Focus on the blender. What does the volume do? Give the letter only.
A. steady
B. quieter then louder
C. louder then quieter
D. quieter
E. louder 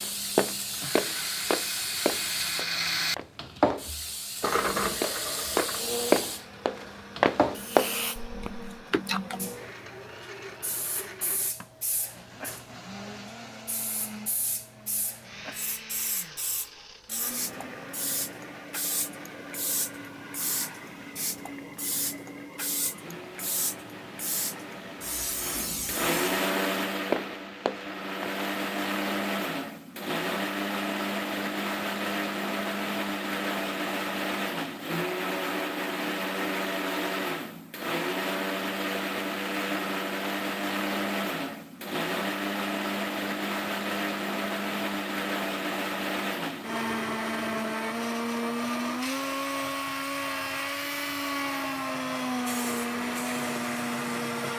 B.